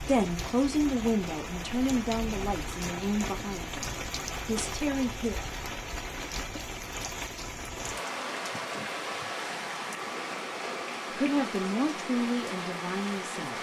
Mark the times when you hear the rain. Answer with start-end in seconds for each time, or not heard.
0.0-13.5.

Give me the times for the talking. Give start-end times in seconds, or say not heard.
0.0-5.3, 11.2-13.5.